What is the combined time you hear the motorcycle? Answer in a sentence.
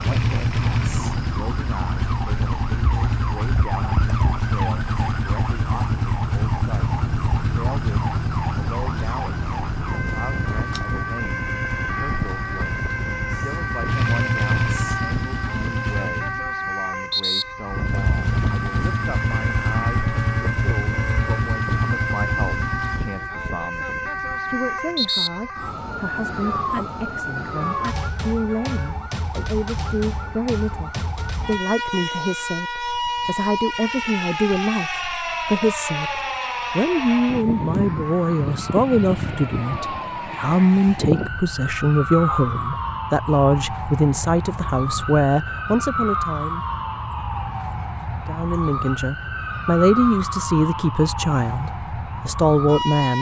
The motorcycle can be heard for 22 seconds in total.